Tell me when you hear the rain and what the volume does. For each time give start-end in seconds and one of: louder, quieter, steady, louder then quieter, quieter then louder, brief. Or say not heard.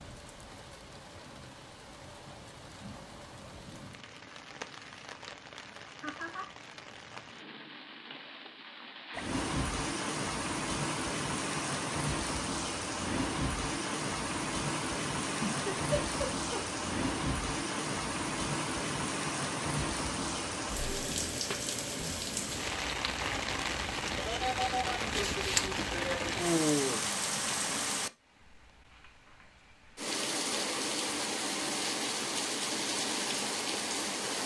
0.0-34.4 louder.